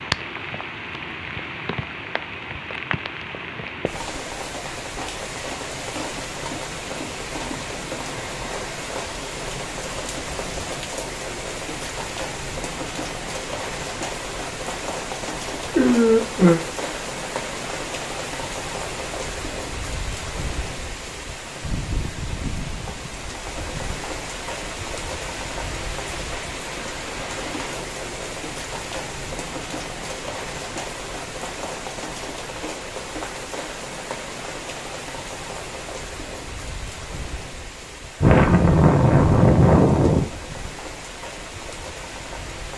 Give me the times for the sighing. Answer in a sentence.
The sighing can be heard from 15.7 to 16.6 s and from 38.2 to 40.3 s.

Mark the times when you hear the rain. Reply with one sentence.
The rain can be heard from 0.0 to 42.7 s.